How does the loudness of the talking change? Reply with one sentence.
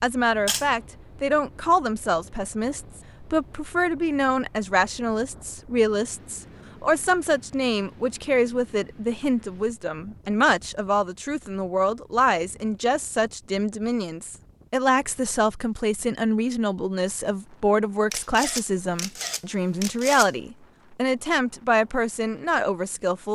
The volume of the talking stays about the same.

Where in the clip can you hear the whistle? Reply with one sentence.
The whistle can't be heard in this clip.